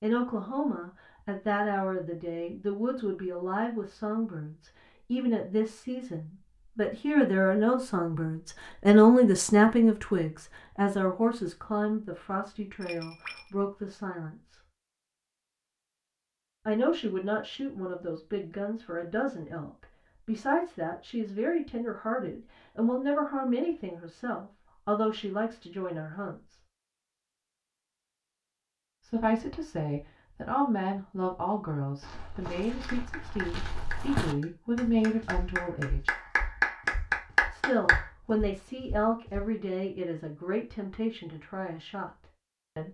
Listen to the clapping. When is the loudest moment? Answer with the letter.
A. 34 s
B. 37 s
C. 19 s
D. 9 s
B.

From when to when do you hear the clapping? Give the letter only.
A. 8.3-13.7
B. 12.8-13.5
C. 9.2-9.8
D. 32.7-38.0
D.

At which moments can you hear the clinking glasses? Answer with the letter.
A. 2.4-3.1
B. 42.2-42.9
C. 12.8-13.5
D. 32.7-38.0
C.